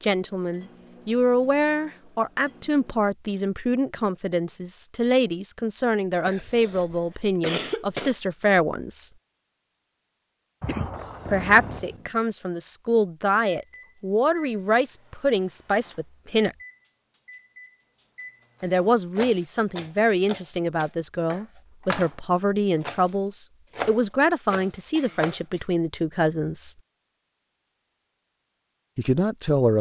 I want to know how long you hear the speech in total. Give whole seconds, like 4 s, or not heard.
23 s.